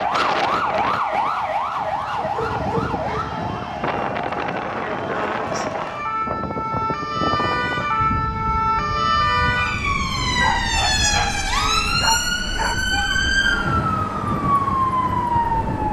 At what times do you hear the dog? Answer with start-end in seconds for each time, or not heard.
2.1-3.4, 10.4-13.2.